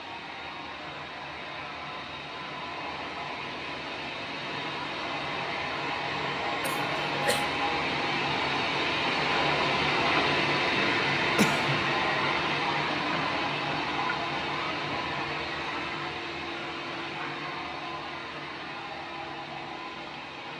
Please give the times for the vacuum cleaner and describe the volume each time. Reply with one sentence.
You can hear the vacuum cleaner from 0.0 to 20.5 s, getting louder then quieter.